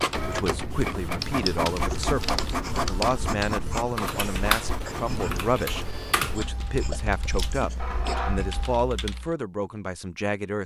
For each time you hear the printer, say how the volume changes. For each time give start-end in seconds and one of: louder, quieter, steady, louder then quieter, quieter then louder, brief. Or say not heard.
0.0-8.8 quieter then louder.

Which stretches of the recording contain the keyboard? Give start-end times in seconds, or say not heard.
0.0-9.3.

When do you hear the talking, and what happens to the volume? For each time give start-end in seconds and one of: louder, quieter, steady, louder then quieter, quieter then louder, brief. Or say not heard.
0.2-10.6 steady.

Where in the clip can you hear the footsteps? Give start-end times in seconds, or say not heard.
not heard.